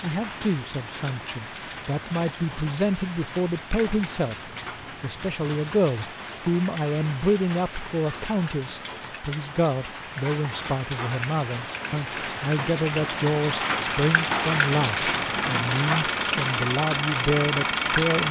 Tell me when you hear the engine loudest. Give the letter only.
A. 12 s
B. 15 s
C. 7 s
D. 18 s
D.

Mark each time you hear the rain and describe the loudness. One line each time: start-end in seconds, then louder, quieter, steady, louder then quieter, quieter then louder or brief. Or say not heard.
0.0-18.2 louder.